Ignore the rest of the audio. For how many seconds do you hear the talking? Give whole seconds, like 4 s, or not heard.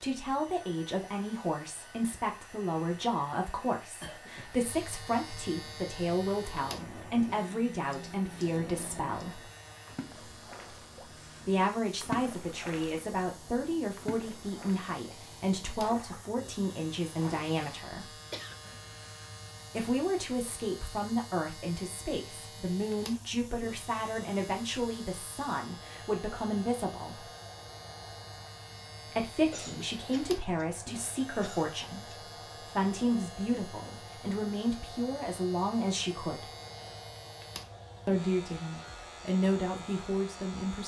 34 s.